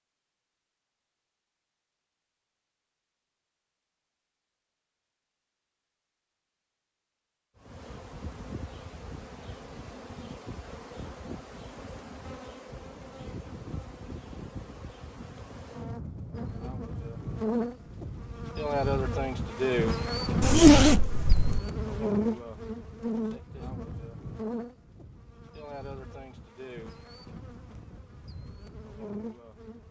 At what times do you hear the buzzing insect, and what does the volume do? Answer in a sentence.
You can hear the buzzing insect from 7.5 to 29.8 s, getting louder then quieter.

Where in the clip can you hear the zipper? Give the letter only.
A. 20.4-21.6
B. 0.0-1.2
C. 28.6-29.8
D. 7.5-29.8
A.